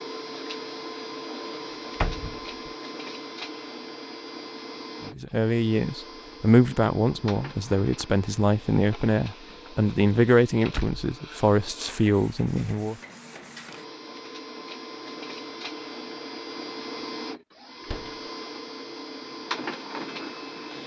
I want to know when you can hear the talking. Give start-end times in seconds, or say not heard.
5.0-12.9.